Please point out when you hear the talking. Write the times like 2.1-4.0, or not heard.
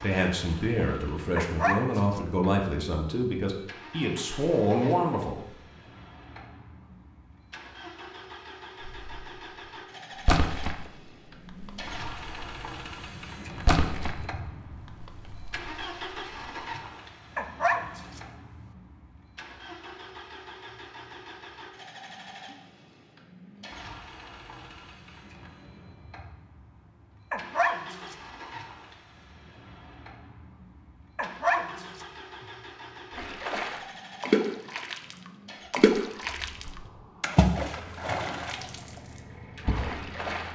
0.0-5.5.